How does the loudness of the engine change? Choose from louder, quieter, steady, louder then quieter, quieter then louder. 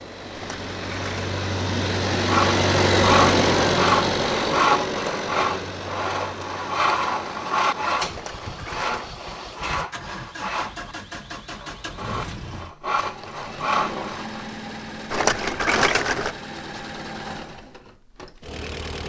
quieter.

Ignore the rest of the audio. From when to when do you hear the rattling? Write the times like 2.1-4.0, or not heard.
0.3-1.3, 8.1-9.1, 15.1-16.4.